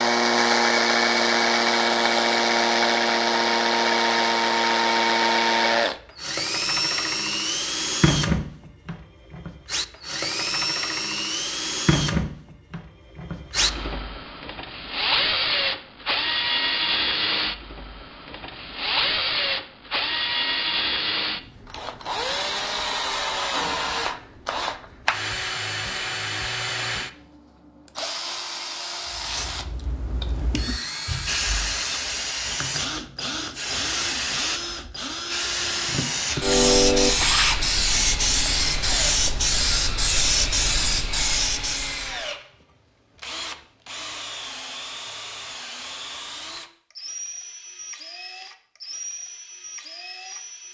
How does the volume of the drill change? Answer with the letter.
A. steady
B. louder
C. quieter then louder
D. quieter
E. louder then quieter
D.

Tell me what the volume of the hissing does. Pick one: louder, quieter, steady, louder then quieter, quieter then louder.
louder.